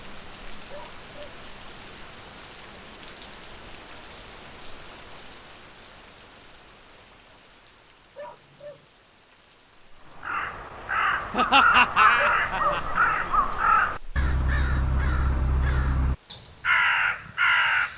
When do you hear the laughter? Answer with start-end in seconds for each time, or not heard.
11.3-13.0.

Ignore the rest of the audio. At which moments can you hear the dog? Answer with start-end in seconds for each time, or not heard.
0.7-1.4, 8.2-8.8, 12.2-12.9.